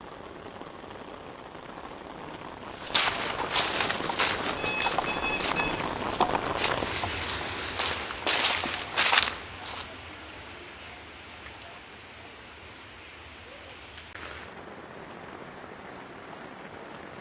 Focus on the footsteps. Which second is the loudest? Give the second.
9 s.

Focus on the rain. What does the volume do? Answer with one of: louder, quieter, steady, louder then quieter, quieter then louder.
louder then quieter.